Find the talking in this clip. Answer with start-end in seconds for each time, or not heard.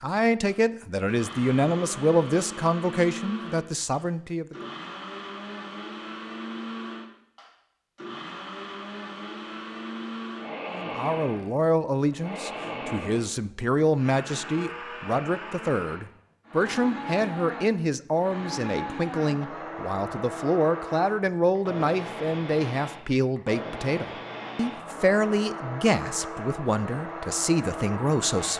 0.0-4.7, 10.7-28.5.